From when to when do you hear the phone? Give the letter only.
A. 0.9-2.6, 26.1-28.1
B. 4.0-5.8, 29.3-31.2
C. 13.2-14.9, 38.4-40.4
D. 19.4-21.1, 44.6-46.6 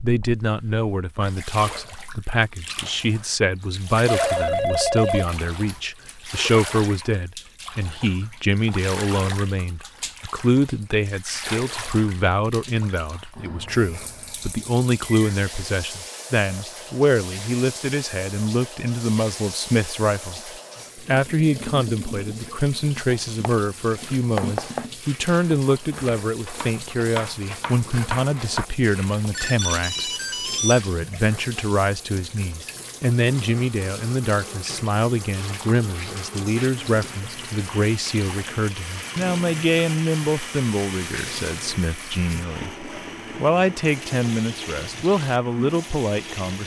B.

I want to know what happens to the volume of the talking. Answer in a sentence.
The loudness of the talking stays about the same.